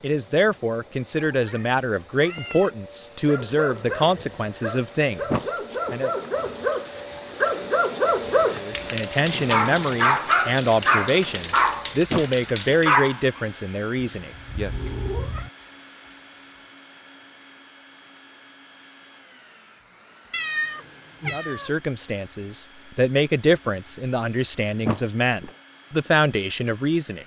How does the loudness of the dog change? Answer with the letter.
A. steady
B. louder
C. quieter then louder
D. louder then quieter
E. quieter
B.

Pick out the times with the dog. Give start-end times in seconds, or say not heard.
3.2-13.4.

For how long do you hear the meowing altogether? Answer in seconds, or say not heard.
4 s.